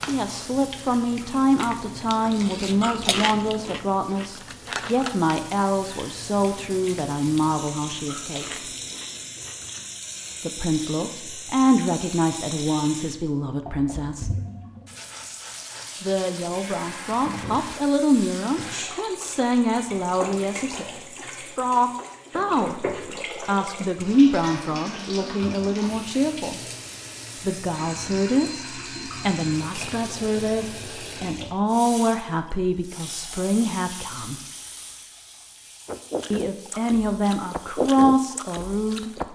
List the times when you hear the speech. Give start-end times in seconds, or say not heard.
0.0-8.6, 10.4-14.3, 16.0-26.6, 27.4-34.4, 36.3-39.1.